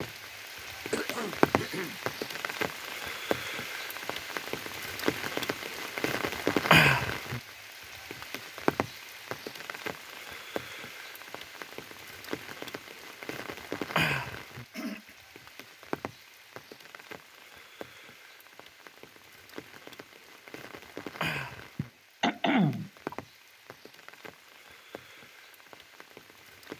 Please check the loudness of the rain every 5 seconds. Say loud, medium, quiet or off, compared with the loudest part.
medium, loud, medium, quiet, quiet, quiet.